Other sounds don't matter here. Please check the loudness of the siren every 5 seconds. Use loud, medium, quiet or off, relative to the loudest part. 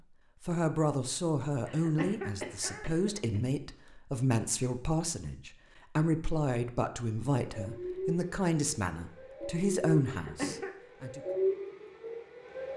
off, loud, loud.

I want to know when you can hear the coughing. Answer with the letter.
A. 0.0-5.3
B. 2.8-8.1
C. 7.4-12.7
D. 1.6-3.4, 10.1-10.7
D.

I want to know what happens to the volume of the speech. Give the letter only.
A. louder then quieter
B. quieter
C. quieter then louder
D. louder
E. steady
E.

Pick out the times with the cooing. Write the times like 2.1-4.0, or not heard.
not heard.